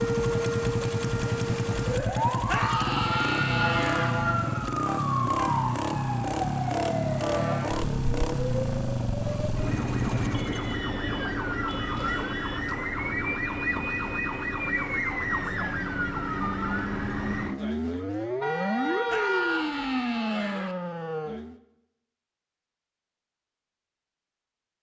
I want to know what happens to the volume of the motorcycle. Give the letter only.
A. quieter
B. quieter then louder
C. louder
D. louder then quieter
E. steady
E.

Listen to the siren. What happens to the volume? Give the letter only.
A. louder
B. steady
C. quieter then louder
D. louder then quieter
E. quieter
B.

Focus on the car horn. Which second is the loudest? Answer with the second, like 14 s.
19 s.